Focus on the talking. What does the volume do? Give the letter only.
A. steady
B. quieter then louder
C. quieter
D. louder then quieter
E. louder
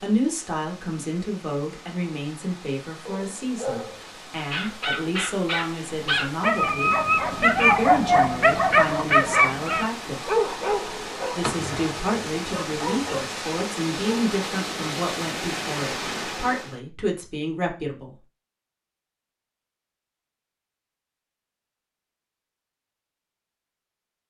A.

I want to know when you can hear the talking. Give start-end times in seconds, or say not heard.
0.0-10.2, 11.3-18.1.